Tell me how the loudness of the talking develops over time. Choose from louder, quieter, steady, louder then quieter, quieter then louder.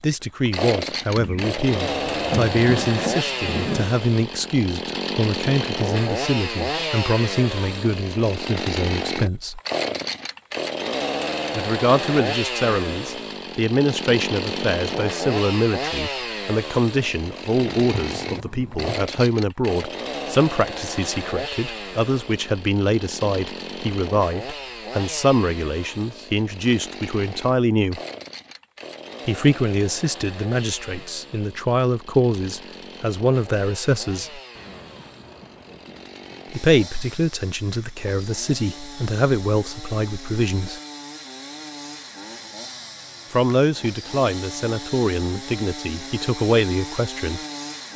steady.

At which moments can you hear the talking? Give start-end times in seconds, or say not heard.
0.0-9.6, 11.6-28.0, 29.2-34.4, 36.5-40.8, 43.3-47.4.